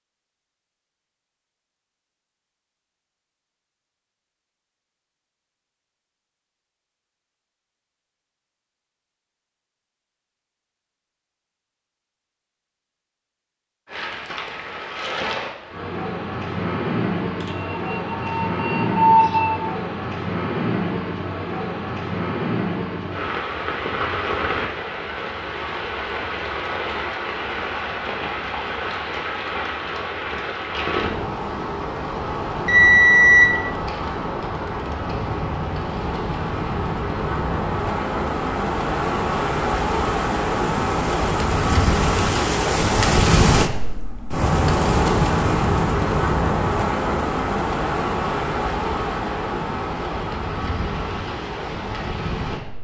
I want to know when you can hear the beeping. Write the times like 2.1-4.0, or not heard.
17.4-19.6, 32.6-33.5.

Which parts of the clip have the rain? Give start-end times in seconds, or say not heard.
13.8-52.7.